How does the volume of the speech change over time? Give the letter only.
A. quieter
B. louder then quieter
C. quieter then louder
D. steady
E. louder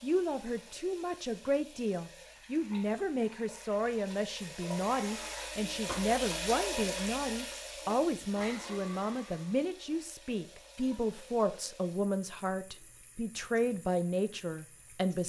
D.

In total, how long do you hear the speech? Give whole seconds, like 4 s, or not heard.
15 s.